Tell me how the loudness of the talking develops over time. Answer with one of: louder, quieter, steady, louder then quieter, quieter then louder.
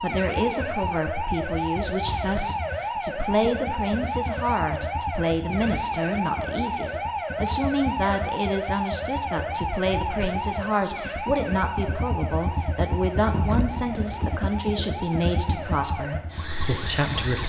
steady.